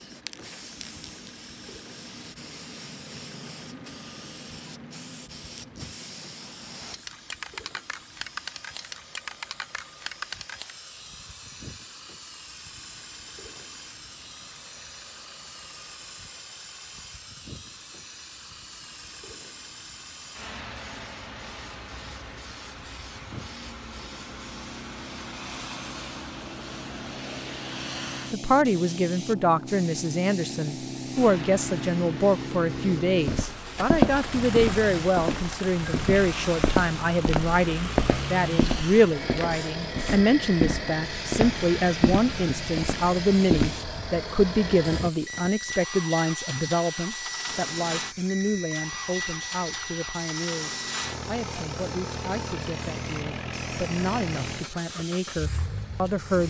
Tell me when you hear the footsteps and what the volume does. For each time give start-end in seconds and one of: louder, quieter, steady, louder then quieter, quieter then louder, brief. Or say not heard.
33.2-43.9 quieter.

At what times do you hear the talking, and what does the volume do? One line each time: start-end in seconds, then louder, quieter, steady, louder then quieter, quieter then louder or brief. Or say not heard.
28.3-56.4 quieter.